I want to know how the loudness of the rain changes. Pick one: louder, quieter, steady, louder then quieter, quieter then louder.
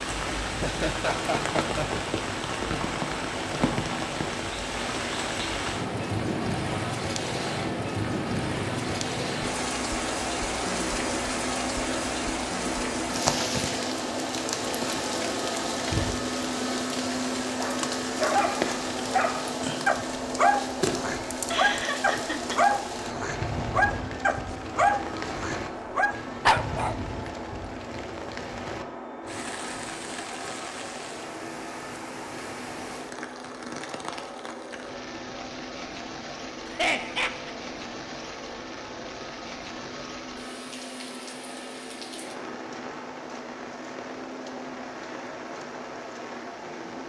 quieter.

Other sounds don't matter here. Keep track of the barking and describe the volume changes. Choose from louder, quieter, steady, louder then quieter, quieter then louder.
steady.